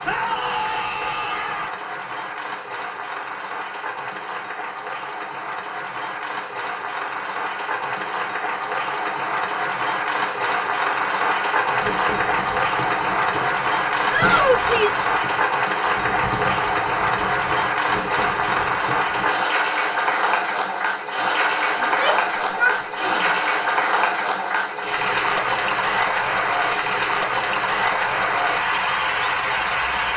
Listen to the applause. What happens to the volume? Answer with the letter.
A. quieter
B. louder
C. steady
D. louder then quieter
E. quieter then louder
B.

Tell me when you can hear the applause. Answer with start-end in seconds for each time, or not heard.
0.0-30.1.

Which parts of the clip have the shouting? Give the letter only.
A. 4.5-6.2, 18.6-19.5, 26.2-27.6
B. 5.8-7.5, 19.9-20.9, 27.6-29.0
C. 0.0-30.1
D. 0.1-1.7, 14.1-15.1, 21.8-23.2
D.